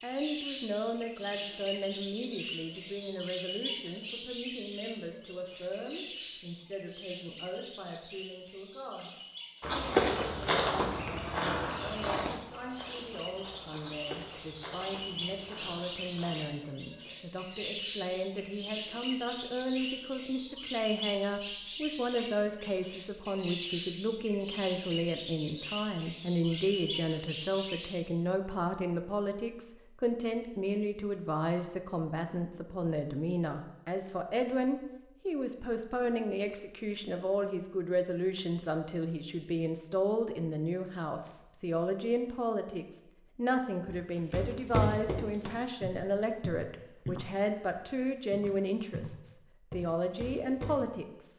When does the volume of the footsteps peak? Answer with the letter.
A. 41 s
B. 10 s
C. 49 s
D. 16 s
B.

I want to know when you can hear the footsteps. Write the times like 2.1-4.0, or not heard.
9.6-16.5, 43.9-50.8.